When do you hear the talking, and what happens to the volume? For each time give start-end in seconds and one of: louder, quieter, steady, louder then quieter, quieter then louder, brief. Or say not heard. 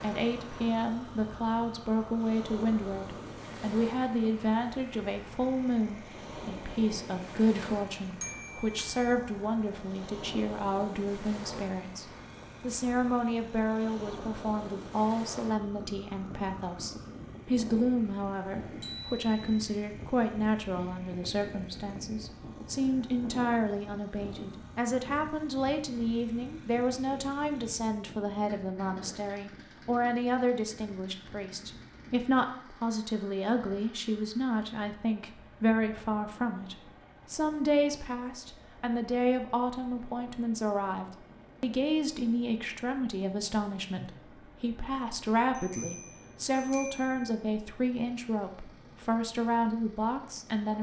0.0-50.7 steady.